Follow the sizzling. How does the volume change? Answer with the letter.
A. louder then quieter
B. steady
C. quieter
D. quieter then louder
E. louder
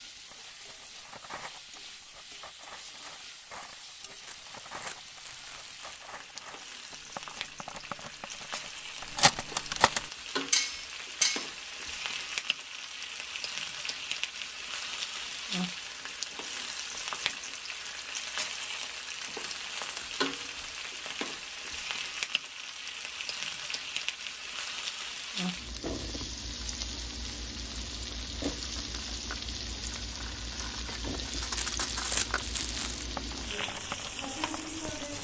E.